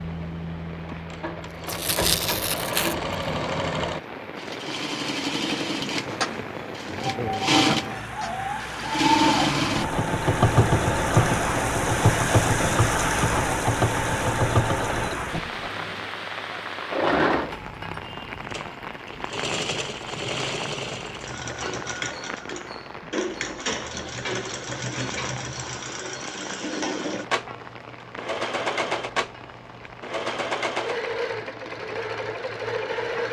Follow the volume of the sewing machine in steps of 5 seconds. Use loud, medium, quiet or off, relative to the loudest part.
medium, loud, loud, medium, medium, medium, medium.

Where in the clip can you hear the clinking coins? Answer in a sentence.
The clinking coins can't be heard in this clip.